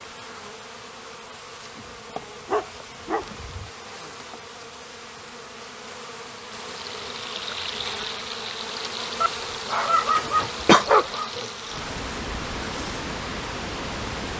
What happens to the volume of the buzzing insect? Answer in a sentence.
The volume of the buzzing insect goes up, then down.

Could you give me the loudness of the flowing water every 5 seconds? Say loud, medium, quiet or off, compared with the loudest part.
off, loud, loud.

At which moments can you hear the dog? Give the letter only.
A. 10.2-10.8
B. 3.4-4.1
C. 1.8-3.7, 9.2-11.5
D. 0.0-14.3
C.